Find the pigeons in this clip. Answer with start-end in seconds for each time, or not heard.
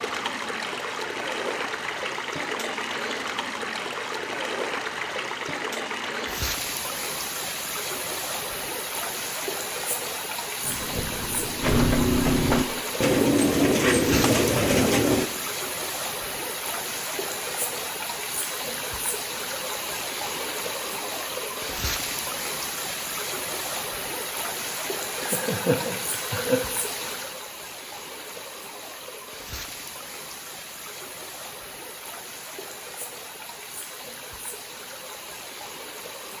10.6-15.3.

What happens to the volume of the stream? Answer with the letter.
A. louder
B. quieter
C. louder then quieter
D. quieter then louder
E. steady
B.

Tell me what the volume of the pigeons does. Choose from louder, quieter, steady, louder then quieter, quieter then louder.
louder.